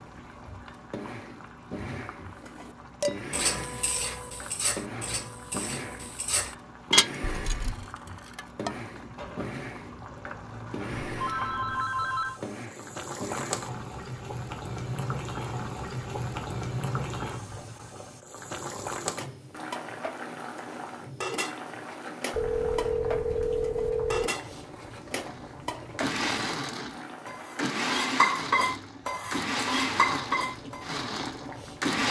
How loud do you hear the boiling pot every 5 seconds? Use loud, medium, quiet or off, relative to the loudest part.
medium, medium, loud, loud, medium, medium, medium.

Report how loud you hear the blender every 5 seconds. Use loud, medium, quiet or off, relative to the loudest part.
medium, medium, medium, off, off, loud, loud.